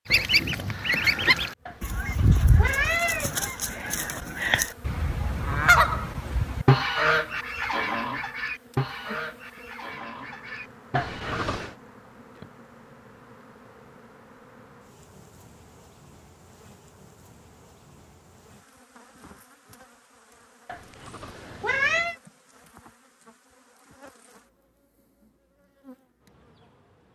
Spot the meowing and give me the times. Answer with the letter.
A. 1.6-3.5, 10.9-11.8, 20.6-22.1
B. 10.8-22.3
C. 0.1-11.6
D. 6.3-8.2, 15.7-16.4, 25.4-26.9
A.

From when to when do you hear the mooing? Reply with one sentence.
You can't hear the mooing here.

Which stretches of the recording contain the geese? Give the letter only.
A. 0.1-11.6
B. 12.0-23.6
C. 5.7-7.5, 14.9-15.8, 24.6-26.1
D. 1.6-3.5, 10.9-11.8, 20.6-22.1
A.